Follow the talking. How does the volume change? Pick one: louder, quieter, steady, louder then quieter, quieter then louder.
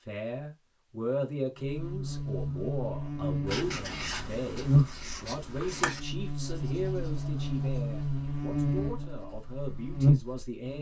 quieter.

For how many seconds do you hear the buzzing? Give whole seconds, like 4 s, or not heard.
9 s.